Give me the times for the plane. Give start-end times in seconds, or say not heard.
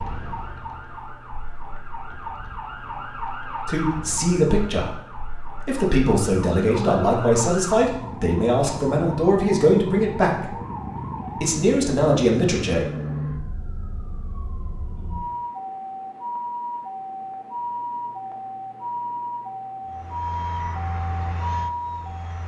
19.9-22.4.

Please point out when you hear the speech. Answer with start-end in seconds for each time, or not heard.
3.6-5.0, 5.7-10.5, 11.4-12.8.